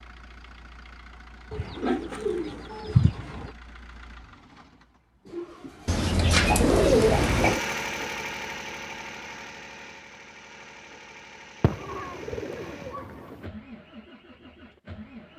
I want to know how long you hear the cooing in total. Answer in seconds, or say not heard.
6 s.